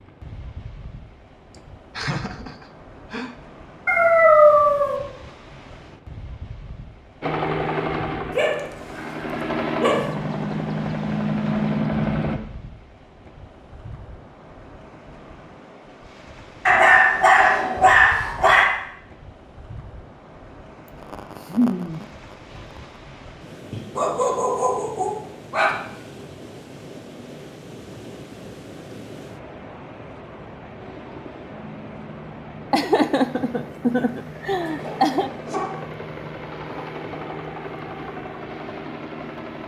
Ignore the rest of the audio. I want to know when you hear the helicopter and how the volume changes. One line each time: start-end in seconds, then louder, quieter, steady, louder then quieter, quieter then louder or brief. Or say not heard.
7.2-12.4 quieter then louder
30.8-39.6 louder.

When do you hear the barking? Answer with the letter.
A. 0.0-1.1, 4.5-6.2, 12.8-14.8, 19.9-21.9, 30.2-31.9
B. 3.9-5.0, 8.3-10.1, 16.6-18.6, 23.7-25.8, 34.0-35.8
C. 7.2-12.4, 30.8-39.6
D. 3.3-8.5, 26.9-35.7
B.